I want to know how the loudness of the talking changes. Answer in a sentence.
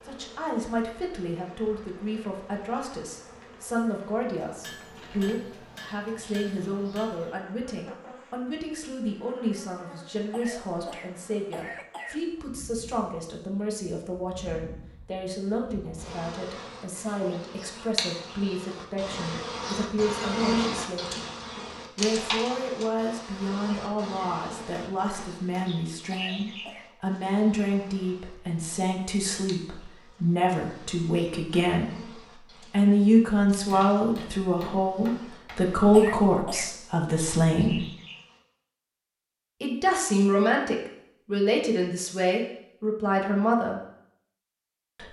The volume of the talking goes up.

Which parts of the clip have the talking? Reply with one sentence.
You can hear the talking from 0.1 to 21.1 s, from 21.9 to 37.8 s and from 39.6 to 43.8 s.